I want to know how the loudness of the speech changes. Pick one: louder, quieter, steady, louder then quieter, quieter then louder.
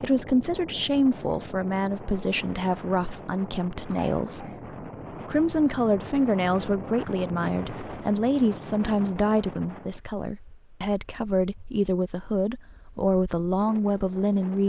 steady.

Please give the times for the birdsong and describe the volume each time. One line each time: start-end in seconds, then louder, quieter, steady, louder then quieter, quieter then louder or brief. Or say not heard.
not heard.